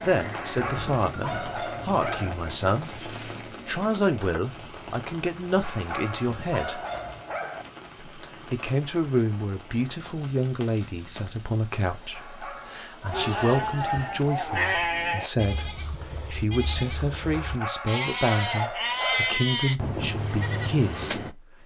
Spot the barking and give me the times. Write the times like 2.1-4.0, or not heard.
0.3-2.4, 5.6-7.7, 12.1-14.2, 17.3-19.4.